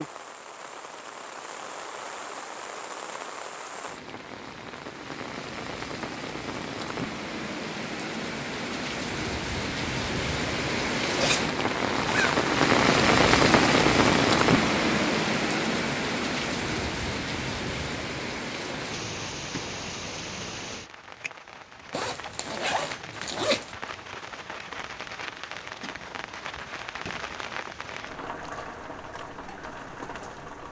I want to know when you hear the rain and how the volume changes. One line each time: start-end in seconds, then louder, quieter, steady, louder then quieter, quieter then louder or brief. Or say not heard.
0.0-30.6 louder then quieter.